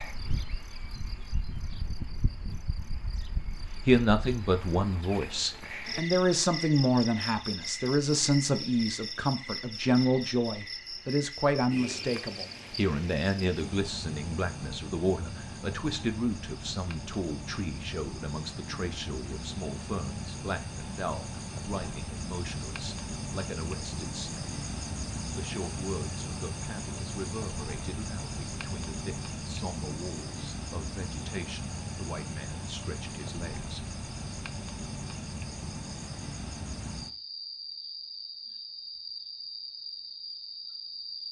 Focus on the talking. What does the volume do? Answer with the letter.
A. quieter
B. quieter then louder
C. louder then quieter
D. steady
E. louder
A.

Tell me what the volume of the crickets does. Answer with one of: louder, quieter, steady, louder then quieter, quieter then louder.
steady.